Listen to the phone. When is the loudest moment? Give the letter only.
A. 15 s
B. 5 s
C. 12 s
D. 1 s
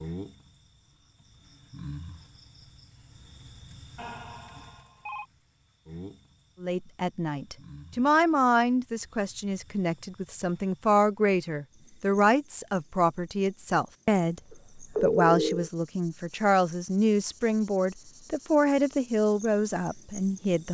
A.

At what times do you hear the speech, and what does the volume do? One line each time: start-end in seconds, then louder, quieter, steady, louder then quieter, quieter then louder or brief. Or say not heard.
6.6-20.6 steady.